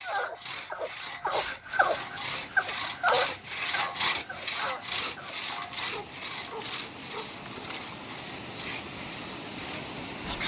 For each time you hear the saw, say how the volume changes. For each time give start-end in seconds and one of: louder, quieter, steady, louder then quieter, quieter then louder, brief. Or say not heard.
0.0-10.4 louder then quieter.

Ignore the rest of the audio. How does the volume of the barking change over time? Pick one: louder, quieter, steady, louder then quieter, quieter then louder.
louder then quieter.